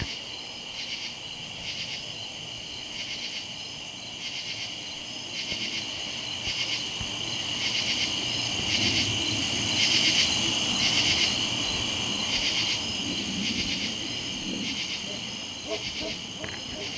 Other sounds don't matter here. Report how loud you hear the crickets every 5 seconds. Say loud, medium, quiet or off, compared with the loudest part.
medium, loud, loud, medium.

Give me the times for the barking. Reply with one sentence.
The barking can be heard from 15.0 to 16.9 s.